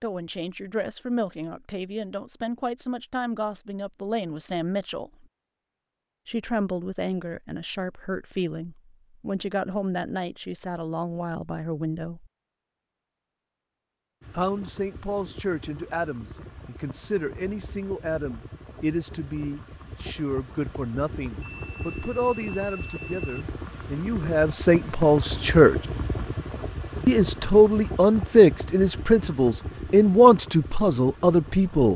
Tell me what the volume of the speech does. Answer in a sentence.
The volume of the speech goes up.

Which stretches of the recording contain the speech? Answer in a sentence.
The speech can be heard from 0.0 to 5.2 s, from 6.2 to 12.3 s, from 14.3 to 25.8 s and from 27.1 to 31.9 s.